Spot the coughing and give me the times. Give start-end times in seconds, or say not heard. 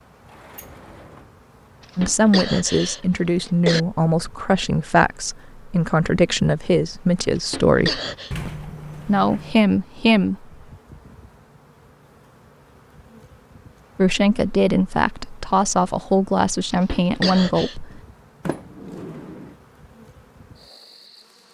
1.8-3.8, 7.3-8.3, 16.7-17.8.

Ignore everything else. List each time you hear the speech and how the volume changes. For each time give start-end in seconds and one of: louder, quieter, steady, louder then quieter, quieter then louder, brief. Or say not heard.
1.9-8.0 steady
9.1-10.4 brief
13.9-18.0 steady.